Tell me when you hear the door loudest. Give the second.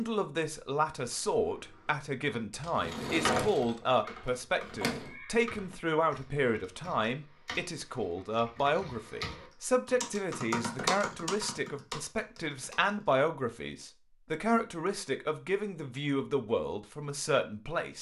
3 s.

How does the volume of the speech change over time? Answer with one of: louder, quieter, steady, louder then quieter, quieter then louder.
steady.